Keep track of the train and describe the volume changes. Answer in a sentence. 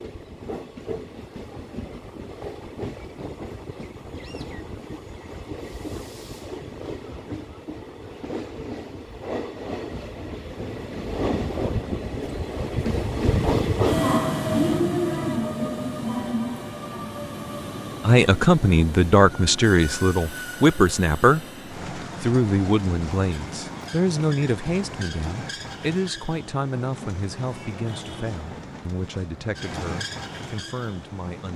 The volume of the train goes up, then down.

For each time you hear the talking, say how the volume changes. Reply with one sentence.
You can hear the talking from 18.1 to 31.5 s, getting quieter.